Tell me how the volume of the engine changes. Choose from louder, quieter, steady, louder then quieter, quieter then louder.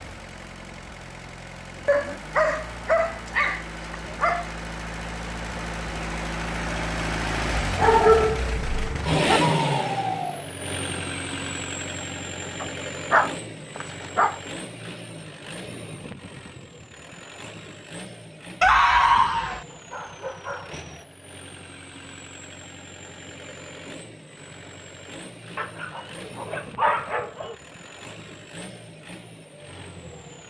louder then quieter.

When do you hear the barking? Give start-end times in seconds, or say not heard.
1.9-4.5, 7.8-9.4, 12.6-14.3, 18.6-20.6, 25.6-27.6.